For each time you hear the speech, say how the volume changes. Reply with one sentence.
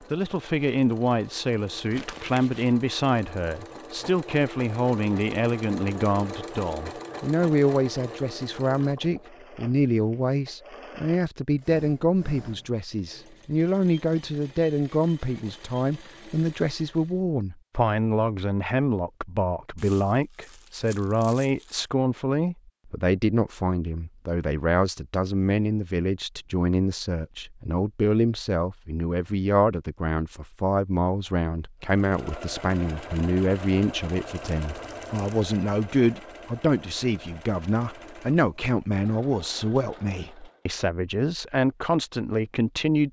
You can hear the speech from 0.1 to 43.0 s, at a steady volume.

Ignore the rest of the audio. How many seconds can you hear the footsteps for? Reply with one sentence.
You can't hear the footsteps here.